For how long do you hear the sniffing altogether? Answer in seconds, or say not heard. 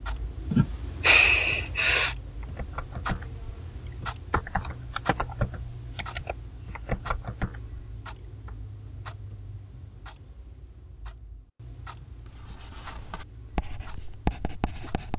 2 s.